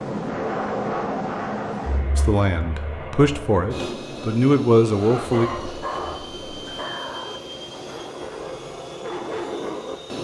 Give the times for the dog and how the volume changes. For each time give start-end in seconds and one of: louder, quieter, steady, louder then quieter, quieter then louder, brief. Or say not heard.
4.9-10.0 quieter then louder.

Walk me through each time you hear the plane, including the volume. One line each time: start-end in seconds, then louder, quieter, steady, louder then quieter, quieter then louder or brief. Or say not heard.
0.0-10.1 quieter.